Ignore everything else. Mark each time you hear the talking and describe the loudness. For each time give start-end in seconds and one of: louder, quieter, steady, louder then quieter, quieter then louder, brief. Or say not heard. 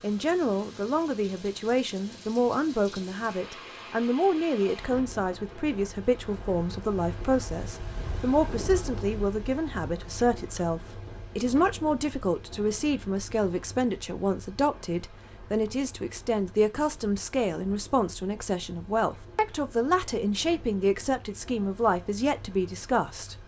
0.0-23.4 steady.